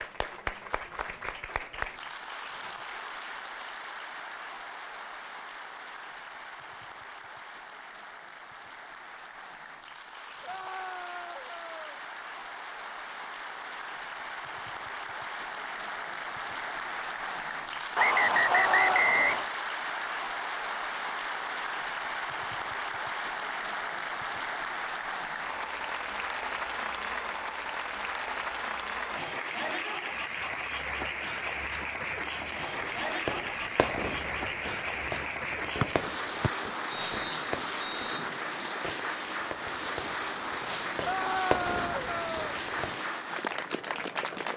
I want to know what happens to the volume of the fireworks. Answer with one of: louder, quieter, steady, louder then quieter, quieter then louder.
quieter then louder.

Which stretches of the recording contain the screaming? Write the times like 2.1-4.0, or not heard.
10.4-12.0, 18.4-19.1, 41.0-42.5.